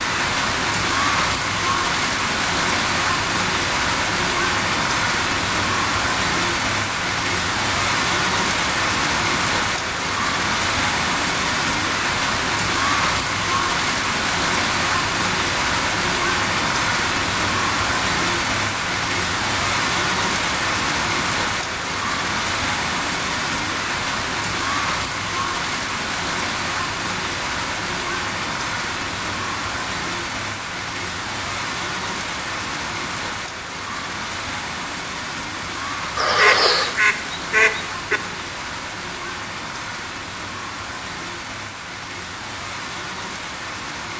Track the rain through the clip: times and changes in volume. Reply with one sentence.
You can hear the rain from 0.0 to 44.1 s, getting quieter.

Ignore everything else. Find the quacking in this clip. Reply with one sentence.
You can hear the quacking from 36.1 to 38.2 s.